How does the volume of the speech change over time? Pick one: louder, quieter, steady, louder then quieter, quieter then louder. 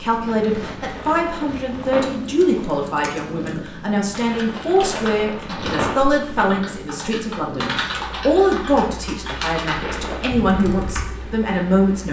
steady.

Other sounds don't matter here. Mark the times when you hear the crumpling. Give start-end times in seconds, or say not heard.
0.2-2.2, 4.1-6.0, 9.7-10.3.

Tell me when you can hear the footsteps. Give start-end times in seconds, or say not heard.
not heard.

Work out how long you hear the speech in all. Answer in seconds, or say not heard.
12 s.